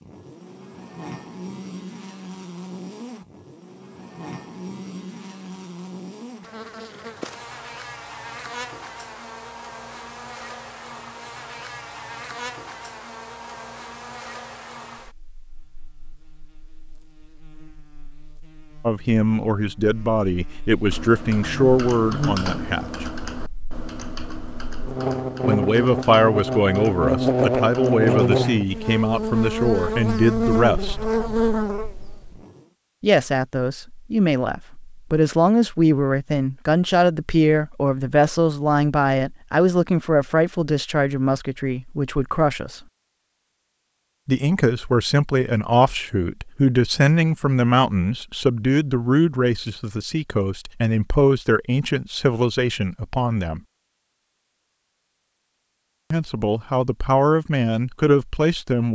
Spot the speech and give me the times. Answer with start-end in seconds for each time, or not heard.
18.9-23.1, 25.4-30.9, 33.0-42.8, 44.2-53.6, 56.1-58.9.